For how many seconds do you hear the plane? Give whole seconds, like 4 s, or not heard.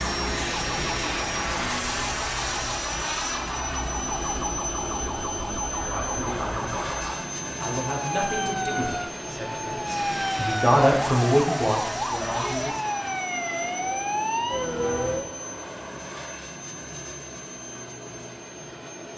19 s.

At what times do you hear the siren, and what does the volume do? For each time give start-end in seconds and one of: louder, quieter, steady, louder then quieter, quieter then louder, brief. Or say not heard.
0.0-15.3 louder.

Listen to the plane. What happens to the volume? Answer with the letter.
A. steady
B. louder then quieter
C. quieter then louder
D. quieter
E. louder
D.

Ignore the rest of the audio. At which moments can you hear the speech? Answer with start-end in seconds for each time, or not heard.
5.8-12.9.